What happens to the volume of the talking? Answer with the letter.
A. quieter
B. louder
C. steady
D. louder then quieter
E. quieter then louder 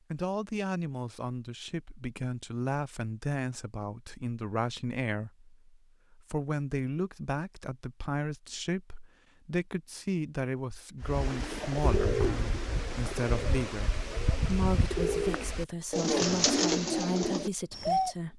C.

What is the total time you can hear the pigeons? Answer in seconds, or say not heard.
7 s.